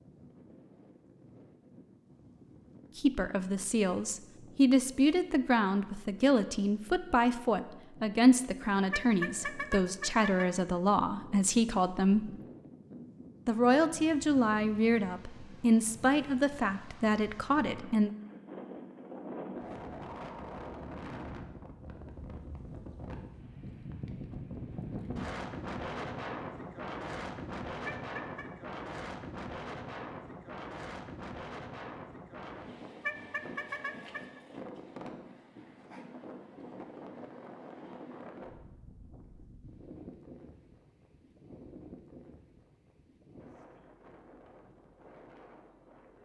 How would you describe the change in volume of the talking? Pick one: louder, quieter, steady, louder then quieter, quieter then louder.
steady.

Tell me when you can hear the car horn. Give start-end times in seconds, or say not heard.
8.9-10.5, 27.9-28.4, 33.0-34.4.